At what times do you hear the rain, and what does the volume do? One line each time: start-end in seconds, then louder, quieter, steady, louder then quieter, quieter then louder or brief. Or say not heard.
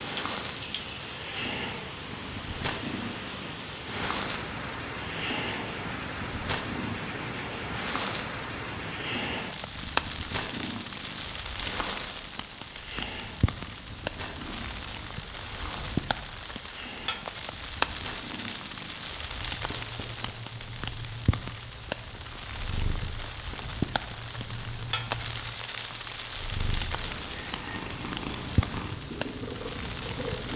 0.0-30.5 steady.